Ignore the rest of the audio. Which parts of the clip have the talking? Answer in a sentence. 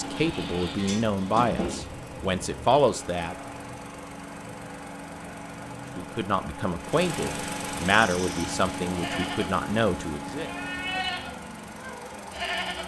The talking can be heard from 0.0 to 3.4 s and from 6.0 to 10.5 s.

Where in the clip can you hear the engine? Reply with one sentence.
The engine can be heard from 0.0 to 12.8 s.